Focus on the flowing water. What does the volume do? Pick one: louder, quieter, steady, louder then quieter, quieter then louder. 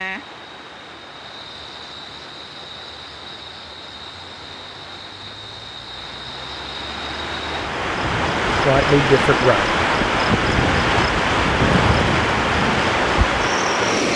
louder.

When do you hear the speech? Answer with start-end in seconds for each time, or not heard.
8.7-9.8.